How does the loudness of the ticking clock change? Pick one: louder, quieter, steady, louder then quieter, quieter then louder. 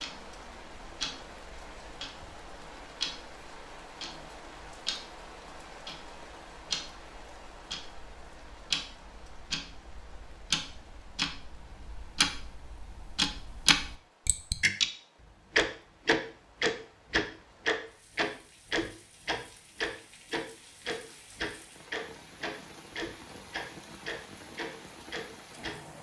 louder.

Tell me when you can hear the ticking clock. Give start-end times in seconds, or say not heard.
0.0-14.8, 15.6-25.8.